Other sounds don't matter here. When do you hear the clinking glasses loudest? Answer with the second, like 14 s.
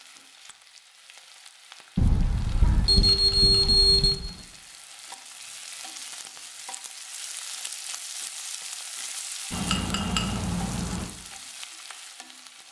10 s.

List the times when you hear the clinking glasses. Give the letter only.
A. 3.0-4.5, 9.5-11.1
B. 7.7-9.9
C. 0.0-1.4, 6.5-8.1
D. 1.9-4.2
A.